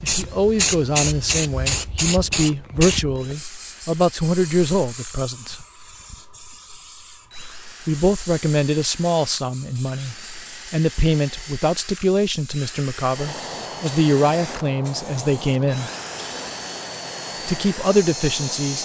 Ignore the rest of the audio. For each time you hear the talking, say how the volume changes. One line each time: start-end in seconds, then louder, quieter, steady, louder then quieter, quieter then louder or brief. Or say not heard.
0.0-5.6 steady
7.8-15.9 steady
17.4-18.8 brief.